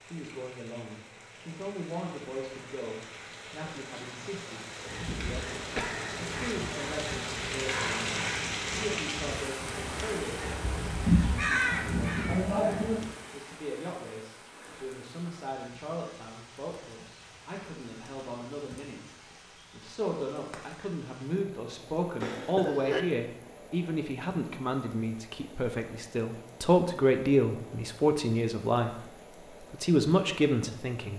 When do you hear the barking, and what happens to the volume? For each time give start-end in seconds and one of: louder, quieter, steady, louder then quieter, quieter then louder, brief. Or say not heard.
not heard.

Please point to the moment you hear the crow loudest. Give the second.
11 s.